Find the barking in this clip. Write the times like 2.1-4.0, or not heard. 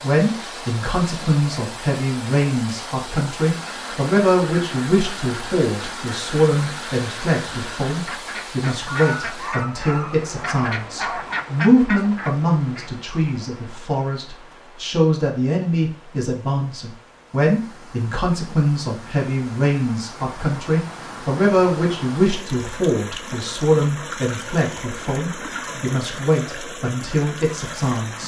8.8-11.4.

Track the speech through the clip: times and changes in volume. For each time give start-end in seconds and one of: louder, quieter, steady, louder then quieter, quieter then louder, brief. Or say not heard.
0.0-28.2 steady.